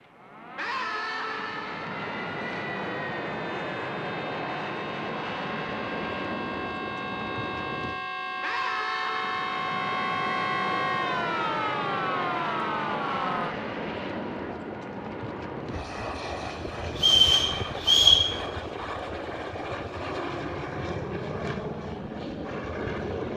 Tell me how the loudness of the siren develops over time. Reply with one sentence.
The volume of the siren goes up.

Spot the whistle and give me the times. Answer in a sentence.
You can hear the whistle from 16.9 to 18.2 s.